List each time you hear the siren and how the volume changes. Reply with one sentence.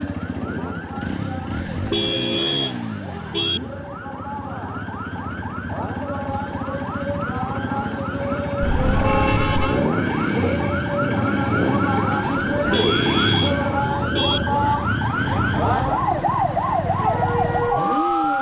The siren can be heard from 0.0 to 18.3 s, getting louder.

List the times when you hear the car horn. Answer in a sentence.
The car horn can be heard from 1.7 to 3.6 s, from 8.6 to 9.8 s and from 12.6 to 14.4 s.